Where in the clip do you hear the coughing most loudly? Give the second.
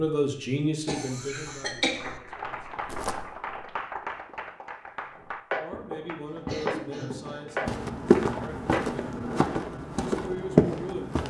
2 s.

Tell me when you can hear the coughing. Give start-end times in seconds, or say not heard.
0.8-2.1, 6.3-7.5.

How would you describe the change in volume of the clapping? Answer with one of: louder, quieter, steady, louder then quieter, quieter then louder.
louder.